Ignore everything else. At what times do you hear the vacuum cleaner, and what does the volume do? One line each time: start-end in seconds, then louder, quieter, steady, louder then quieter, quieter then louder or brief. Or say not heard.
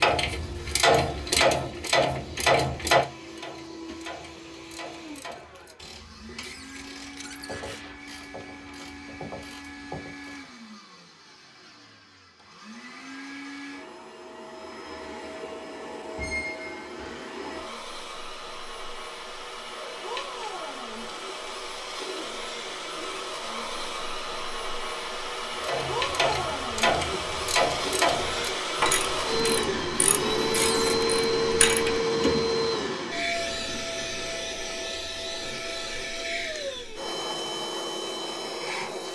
0.2-39.1 louder.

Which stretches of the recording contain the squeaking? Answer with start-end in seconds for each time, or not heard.
6.4-7.8, 16.1-17.6, 30.5-31.1.